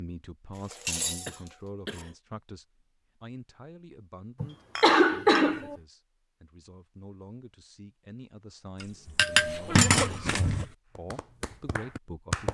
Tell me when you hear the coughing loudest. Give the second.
5 s.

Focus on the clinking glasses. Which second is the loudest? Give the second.
10 s.